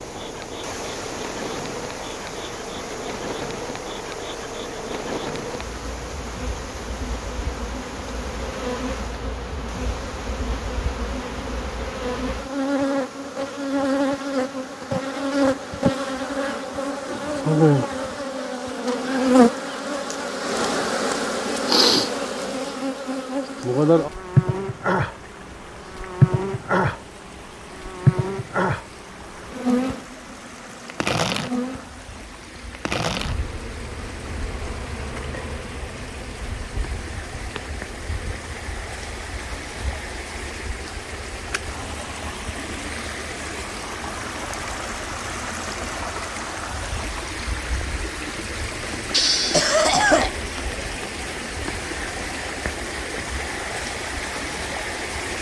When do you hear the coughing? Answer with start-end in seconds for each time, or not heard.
49.1-50.8.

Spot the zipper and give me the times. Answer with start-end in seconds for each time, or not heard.
not heard.